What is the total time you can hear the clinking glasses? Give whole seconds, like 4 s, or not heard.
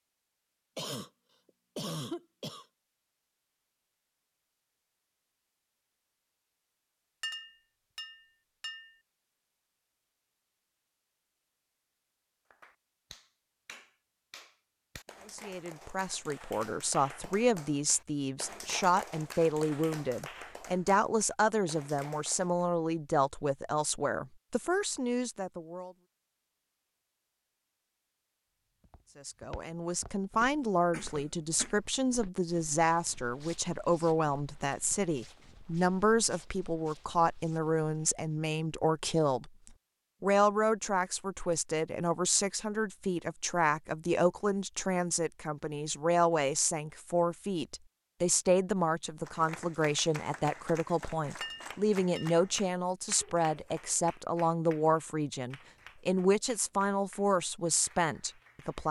3 s.